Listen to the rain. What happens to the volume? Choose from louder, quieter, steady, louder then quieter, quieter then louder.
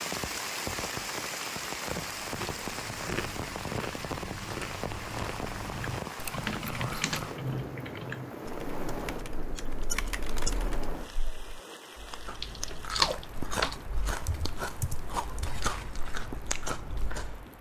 quieter.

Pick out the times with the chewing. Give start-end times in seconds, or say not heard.
2.0-7.4, 12.0-17.4.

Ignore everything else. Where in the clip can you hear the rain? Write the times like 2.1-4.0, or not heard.
0.0-17.5.